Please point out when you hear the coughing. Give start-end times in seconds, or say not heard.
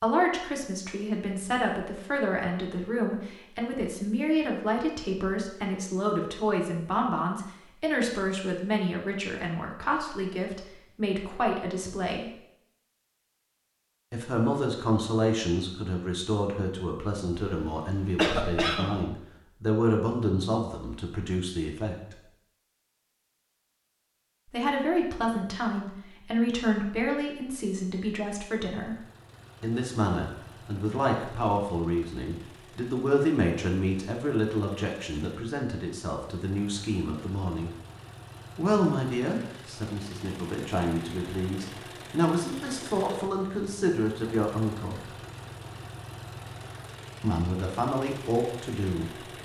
17.5-19.1.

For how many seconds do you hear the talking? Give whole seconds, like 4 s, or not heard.
41 s.